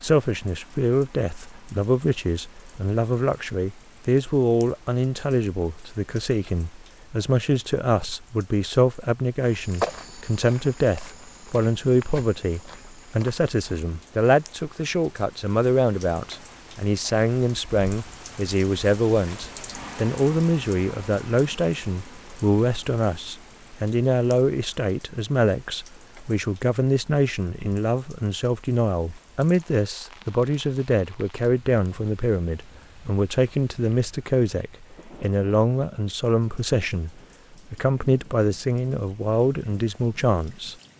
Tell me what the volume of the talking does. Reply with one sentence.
The volume of the talking stays about the same.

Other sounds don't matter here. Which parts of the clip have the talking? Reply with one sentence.
The talking can be heard from 0.0 to 40.8 s.